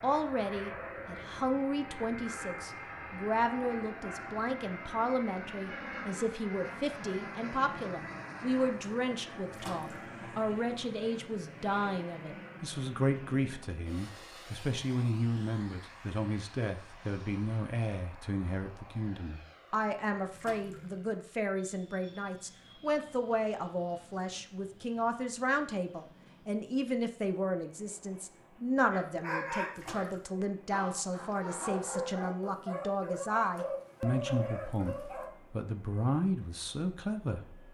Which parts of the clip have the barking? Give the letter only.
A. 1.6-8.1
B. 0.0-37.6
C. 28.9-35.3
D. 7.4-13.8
C.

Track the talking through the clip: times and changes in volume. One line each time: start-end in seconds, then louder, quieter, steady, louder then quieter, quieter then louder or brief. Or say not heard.
0.0-37.6 steady.